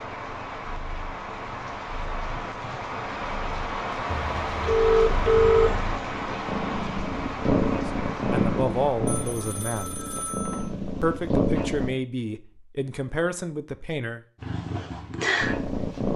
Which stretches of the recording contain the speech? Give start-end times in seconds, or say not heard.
8.3-10.1, 11.0-14.2.